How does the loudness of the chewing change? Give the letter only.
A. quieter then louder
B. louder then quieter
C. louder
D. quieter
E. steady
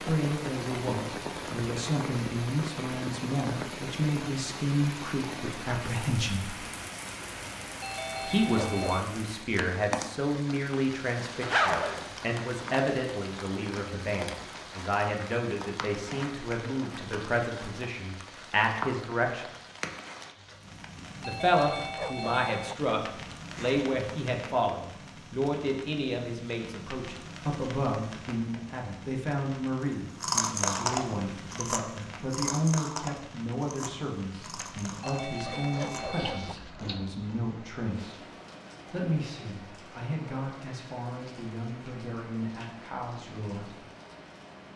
D.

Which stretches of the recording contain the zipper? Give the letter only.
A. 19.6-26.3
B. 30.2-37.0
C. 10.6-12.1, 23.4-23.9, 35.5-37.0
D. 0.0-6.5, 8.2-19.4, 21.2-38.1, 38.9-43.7
C.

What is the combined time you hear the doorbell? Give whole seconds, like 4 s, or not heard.
4 s.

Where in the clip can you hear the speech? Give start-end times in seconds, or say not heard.
0.0-6.5, 8.2-19.4, 21.2-38.1, 38.9-43.7.